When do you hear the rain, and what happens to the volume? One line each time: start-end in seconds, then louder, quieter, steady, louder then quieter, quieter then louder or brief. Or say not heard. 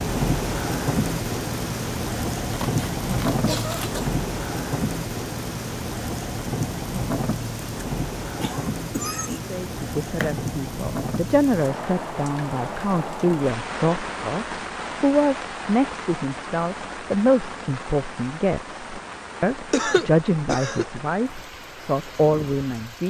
0.0-23.0 quieter.